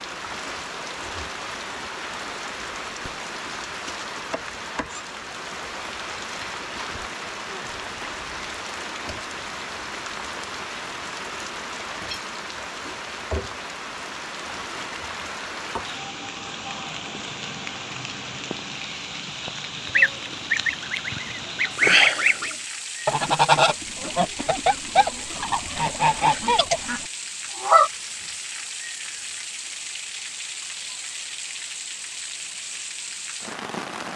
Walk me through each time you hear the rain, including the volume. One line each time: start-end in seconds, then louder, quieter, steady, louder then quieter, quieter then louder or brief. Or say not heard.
0.0-34.1 steady.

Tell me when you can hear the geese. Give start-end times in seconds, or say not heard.
19.9-27.9.